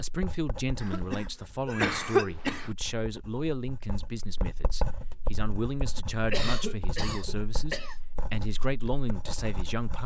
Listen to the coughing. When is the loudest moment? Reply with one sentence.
The loudest moment of the coughing is at 2 seconds.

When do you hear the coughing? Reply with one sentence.
You can hear the coughing from 0.8 to 2.8 s and from 6.3 to 8.0 s.